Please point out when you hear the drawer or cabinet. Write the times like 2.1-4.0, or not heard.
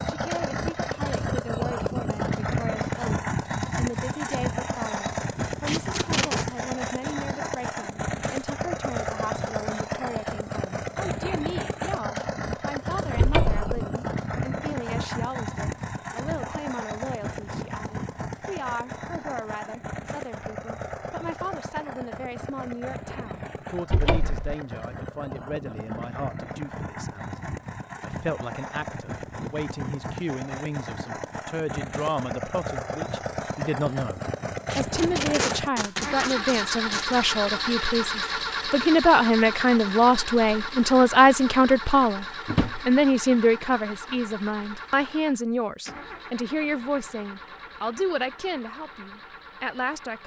13.2-13.7, 23.9-24.6, 42.5-43.0.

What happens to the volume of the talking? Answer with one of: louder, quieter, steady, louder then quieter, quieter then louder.
louder.